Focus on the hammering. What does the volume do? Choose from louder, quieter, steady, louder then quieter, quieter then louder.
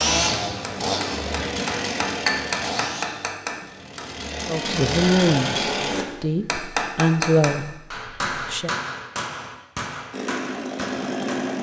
quieter.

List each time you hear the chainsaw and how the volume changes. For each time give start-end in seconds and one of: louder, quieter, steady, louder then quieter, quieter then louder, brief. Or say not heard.
0.0-6.0 quieter then louder
10.1-11.5 brief.